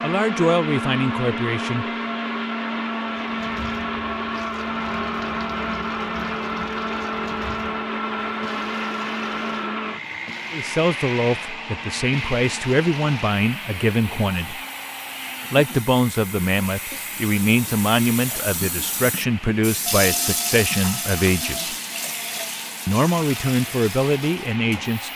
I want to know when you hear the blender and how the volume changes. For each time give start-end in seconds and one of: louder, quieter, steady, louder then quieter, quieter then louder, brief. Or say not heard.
0.0-25.1 quieter.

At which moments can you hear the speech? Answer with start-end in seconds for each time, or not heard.
0.0-1.9, 10.5-14.6, 15.5-21.8, 22.9-25.1.